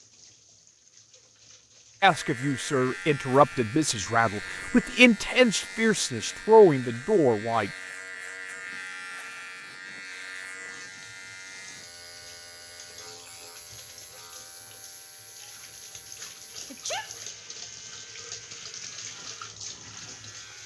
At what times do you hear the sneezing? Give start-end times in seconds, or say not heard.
16.7-17.1.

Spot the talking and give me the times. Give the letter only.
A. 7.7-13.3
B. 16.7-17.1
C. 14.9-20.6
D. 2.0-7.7
D.